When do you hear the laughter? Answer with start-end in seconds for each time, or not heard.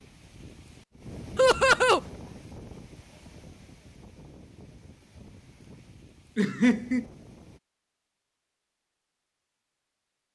1.4-2.0, 6.3-7.0.